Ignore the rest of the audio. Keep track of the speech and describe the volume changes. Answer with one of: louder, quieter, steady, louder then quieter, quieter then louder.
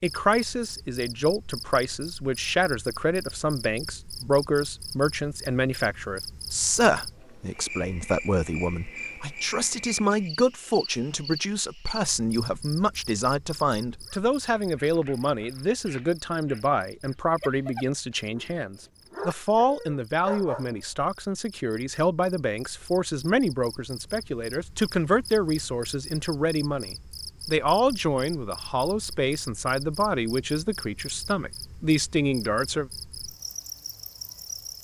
steady.